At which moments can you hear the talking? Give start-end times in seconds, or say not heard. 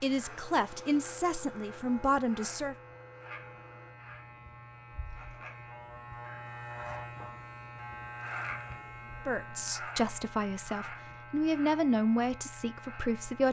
0.0-2.8, 9.2-13.4.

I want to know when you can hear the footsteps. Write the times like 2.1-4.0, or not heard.
not heard.